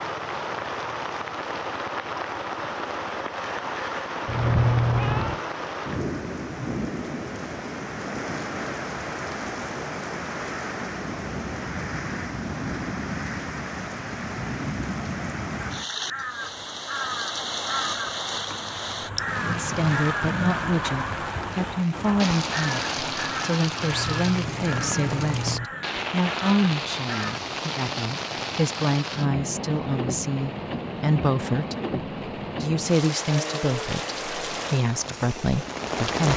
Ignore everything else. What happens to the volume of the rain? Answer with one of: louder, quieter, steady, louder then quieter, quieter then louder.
steady.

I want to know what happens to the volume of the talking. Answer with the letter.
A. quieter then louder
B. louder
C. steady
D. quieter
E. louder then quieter
C.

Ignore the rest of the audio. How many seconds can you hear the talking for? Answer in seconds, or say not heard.
16 s.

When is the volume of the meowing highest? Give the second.
5 s.